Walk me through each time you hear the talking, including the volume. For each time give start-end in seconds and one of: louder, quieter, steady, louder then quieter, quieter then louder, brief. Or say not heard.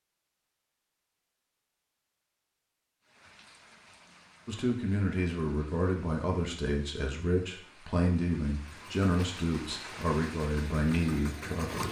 4.5-11.8 steady.